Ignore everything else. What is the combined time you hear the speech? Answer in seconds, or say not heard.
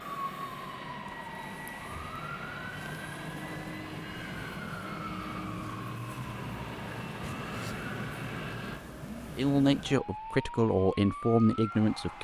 3 s.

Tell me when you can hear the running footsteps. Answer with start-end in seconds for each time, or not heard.
not heard.